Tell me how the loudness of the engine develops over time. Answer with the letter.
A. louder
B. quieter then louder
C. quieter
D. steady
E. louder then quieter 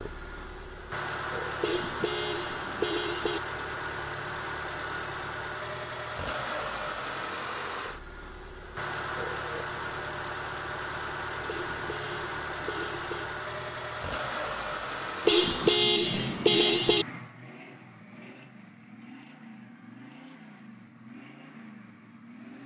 C.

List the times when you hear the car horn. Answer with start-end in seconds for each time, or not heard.
1.6-3.4, 11.4-13.2, 15.2-17.1.